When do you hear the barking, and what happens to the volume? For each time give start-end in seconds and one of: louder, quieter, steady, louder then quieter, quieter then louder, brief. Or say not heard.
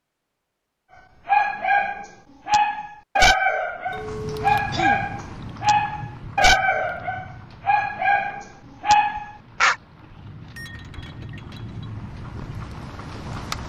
1.2-9.8 steady.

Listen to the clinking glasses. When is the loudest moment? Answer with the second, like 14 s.
4 s.